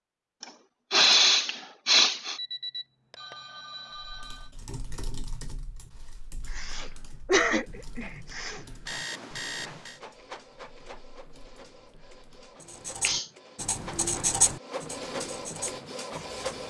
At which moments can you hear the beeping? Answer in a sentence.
The beeping can be heard from 2.4 to 4.5 s and from 8.8 to 10.0 s.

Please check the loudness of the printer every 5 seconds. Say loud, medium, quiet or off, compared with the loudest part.
off, quiet, medium, loud.